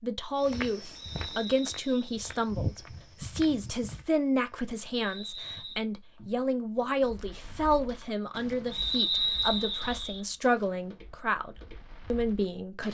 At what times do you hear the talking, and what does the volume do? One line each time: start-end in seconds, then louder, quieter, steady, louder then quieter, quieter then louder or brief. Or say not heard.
0.0-12.8 steady.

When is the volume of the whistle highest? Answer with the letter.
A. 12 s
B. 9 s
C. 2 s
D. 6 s
B.